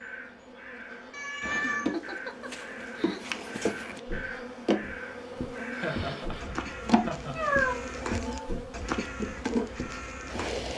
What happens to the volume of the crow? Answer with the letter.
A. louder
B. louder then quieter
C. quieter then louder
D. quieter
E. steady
A.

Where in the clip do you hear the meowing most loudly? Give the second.
8 s.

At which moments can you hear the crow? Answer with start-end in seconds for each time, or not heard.
0.0-10.7.